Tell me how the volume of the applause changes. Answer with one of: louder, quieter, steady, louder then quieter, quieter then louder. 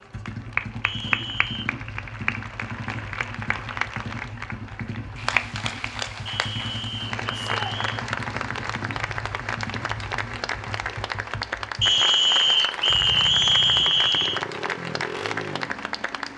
steady.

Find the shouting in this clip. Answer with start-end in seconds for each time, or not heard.
7.3-7.8.